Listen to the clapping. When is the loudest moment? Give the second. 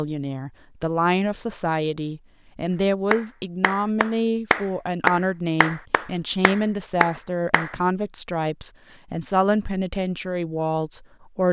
5 s.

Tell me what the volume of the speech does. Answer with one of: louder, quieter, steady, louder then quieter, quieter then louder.
steady.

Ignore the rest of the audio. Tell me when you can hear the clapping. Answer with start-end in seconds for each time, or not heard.
3.1-7.8.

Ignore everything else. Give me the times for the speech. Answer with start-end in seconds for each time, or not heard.
0.0-11.4.